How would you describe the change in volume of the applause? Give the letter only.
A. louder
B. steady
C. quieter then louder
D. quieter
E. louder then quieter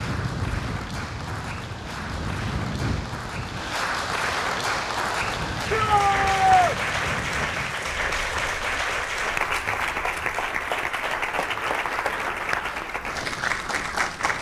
A.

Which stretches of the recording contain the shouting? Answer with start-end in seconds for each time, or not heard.
5.7-6.8.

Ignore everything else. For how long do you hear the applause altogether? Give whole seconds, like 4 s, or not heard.
14 s.